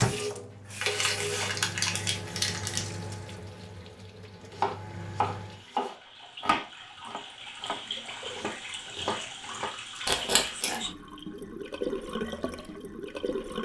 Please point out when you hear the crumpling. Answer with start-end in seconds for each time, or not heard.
0.8-2.8, 10.1-10.8.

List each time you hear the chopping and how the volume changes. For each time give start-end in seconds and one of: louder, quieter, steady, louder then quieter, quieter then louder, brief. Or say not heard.
4.5-9.8 quieter then louder.